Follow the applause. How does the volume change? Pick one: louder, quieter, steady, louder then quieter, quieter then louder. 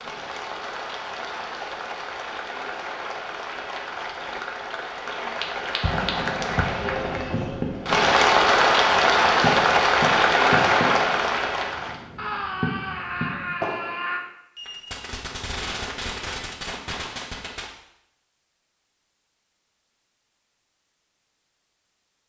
louder.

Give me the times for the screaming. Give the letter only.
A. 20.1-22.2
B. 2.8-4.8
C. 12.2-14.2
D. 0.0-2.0
C.